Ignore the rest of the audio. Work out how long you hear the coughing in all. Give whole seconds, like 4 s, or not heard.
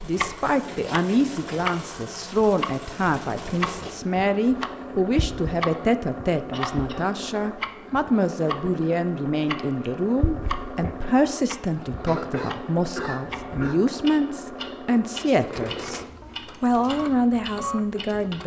2 s.